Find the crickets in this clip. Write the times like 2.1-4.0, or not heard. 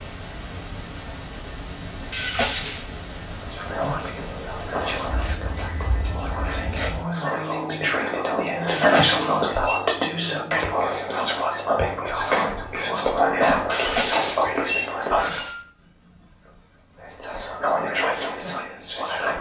0.0-19.3.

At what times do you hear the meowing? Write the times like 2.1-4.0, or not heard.
2.1-2.9, 8.7-9.8, 13.7-15.7.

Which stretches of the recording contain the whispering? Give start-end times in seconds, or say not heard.
3.4-15.5, 17.1-19.3.